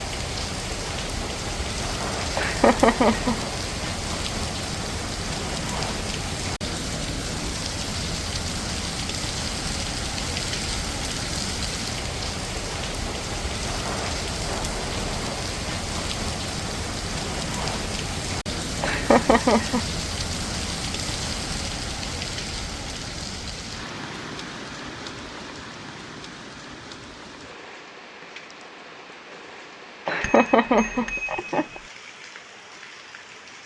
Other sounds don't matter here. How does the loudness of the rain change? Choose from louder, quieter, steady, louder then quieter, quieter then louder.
quieter.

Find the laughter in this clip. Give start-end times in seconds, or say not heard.
2.4-3.4, 18.8-19.9, 30.1-31.8.